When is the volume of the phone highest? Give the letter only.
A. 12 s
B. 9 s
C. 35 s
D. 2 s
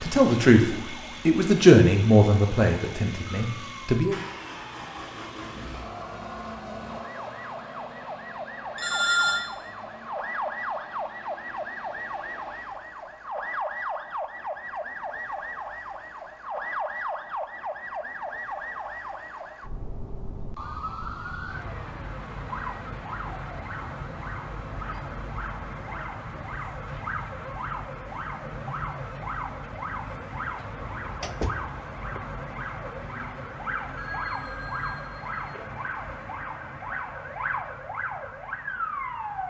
B.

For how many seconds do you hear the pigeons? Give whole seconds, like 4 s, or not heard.
not heard.